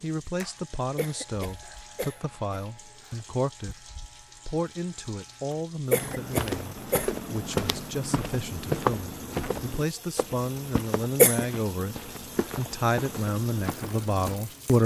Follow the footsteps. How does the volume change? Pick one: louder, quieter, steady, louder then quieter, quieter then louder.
quieter.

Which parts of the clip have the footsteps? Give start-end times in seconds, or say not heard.
6.0-14.4.